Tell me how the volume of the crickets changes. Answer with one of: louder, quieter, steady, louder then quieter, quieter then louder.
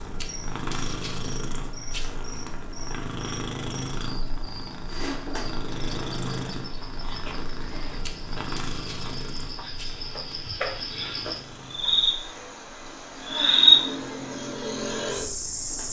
louder.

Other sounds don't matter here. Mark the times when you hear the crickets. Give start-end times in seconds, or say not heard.
0.2-15.8.